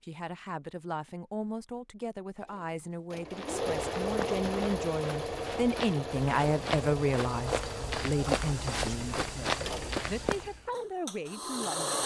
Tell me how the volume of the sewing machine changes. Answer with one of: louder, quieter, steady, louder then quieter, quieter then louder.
quieter.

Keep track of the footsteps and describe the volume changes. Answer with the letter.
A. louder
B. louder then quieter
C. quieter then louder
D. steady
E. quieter
A.